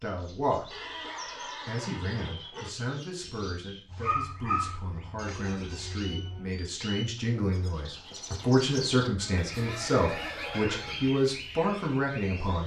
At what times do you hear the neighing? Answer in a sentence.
You can hear the neighing from 0.7 to 2.7 s, from 5.2 to 6.7 s and from 9.2 to 11.1 s.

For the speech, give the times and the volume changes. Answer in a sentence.
The speech can be heard briefly from 0.0 to 0.7 s; and from 1.6 to 12.6 s, getting louder.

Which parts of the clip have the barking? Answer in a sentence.
You can hear the barking from 3.2 to 4.8 s.